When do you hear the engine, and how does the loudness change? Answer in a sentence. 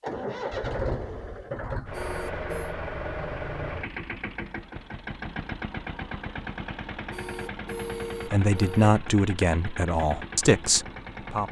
The engine can be heard from 0.0 to 11.4 s, getting quieter.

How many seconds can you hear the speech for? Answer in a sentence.
The speech can be heard for 3 seconds in total.